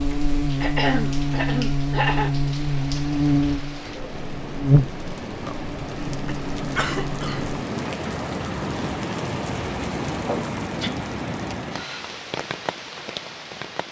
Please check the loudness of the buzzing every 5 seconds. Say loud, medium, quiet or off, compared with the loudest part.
loud, medium, off.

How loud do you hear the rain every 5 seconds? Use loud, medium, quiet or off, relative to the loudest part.
medium, loud, loud.